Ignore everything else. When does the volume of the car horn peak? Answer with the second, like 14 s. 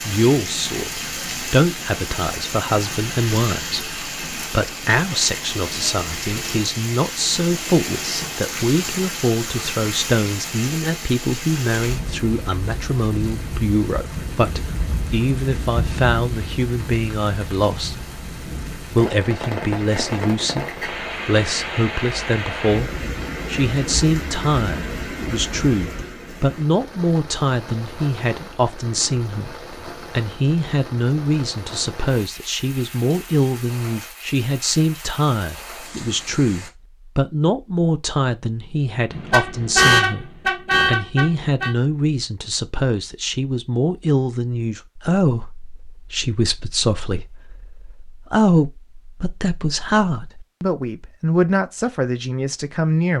40 s.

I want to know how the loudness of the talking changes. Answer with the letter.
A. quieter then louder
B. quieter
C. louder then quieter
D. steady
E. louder
D.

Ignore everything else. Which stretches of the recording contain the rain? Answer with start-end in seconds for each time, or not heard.
0.0-36.7.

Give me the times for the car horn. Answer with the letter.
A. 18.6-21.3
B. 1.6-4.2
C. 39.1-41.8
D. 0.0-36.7
C.